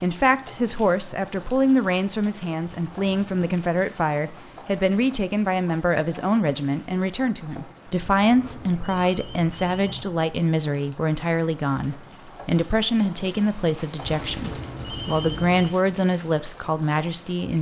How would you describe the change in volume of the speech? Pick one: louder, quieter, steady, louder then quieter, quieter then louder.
steady.